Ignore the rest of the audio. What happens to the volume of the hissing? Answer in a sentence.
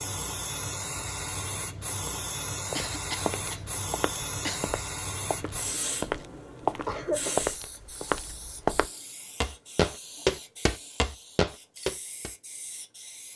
The loudness of the hissing goes down.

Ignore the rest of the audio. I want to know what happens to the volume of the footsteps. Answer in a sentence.
The loudness of the footsteps goes up.